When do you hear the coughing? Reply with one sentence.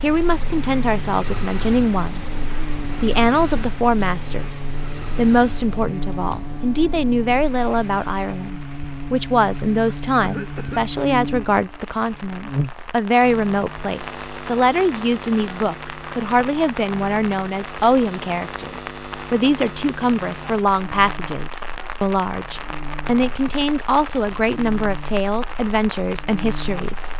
The coughing can be heard from 10.2 to 10.8 s.